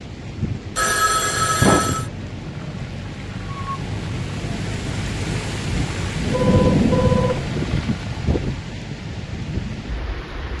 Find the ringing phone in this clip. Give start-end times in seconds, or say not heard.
0.8-2.1, 6.3-7.5.